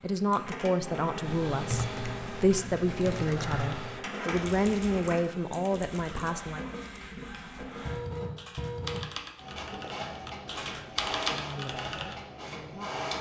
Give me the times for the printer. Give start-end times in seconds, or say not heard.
0.0-13.1.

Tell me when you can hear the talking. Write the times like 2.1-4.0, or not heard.
0.0-6.6, 11.2-13.1.